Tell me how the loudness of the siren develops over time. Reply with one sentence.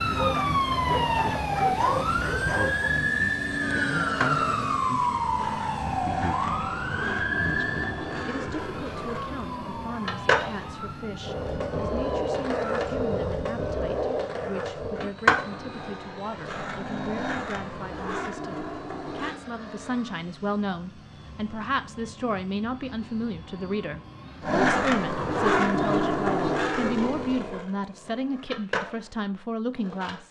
The loudness of the siren goes down.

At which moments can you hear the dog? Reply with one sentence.
The dog can be heard from 0.1 to 3.0 s.